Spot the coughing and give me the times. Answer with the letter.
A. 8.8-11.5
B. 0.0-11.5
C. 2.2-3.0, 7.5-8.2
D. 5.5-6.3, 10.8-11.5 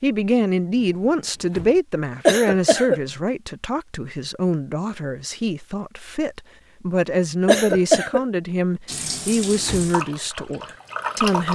C.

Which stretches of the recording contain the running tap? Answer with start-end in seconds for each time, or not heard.
8.8-11.5.